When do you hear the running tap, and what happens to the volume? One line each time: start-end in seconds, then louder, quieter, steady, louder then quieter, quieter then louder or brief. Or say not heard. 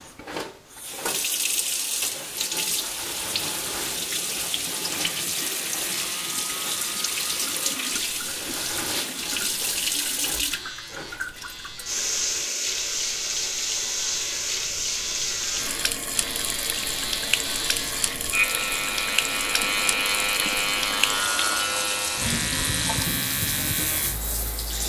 0.0-24.8 steady.